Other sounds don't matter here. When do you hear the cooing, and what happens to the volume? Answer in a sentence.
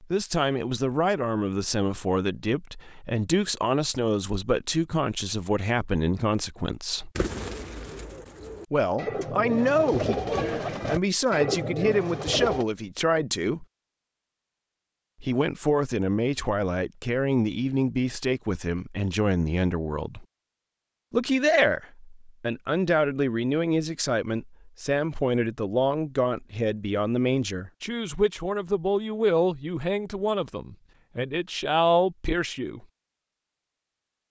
You can hear the cooing from 7.2 to 12.7 s, getting louder.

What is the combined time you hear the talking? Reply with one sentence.
The talking can be heard for 29 seconds in total.